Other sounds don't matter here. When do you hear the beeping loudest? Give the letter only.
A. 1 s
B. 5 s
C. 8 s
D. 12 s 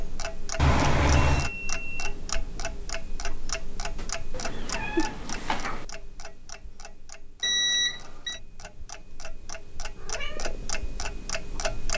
C.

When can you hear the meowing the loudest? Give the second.
1 s.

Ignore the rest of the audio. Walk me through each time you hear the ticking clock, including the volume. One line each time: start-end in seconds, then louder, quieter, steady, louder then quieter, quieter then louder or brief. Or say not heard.
0.0-11.9 quieter then louder.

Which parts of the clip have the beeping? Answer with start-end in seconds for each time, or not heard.
1.2-2.1, 7.4-8.4.